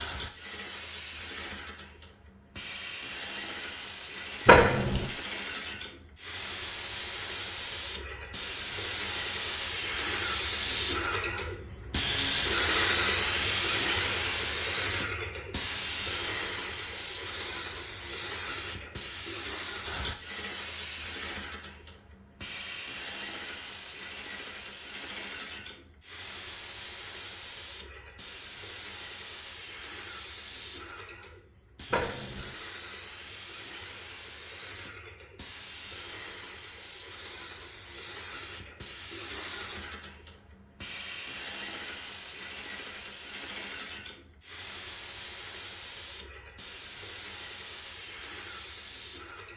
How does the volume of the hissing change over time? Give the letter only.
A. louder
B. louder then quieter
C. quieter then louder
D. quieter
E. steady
B.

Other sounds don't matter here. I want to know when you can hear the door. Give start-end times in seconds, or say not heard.
4.5-5.1, 31.9-32.5.